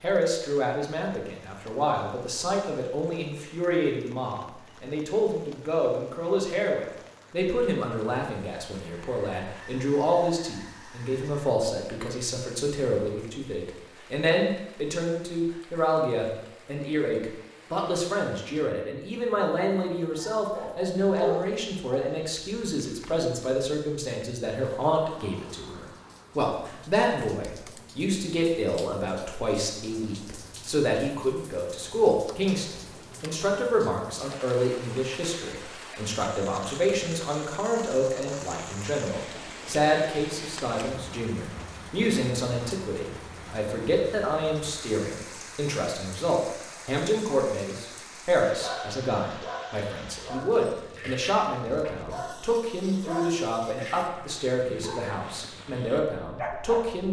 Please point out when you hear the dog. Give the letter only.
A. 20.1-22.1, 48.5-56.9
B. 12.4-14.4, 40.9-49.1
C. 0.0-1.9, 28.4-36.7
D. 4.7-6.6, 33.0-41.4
A.